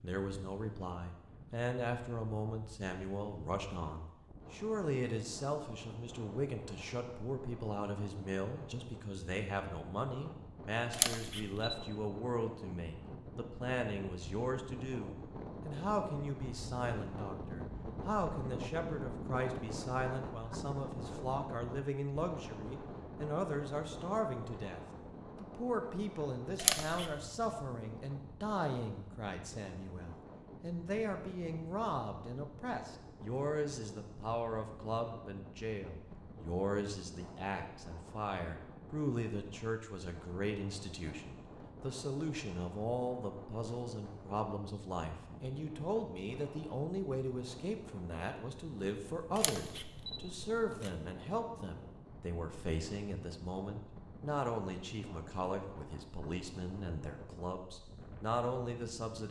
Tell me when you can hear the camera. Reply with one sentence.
The camera can be heard from 10.9 to 11.8 s, from 26.6 to 27.1 s and from 49.4 to 50.9 s.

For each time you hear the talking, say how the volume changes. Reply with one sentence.
You can hear the talking from 0.0 to 59.2 s, at a steady volume.